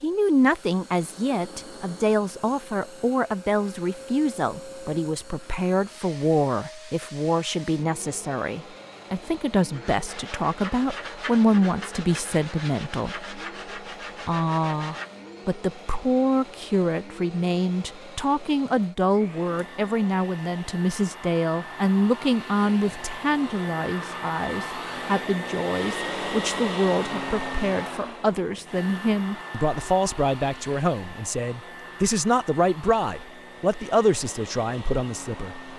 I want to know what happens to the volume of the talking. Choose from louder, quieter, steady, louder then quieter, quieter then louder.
steady.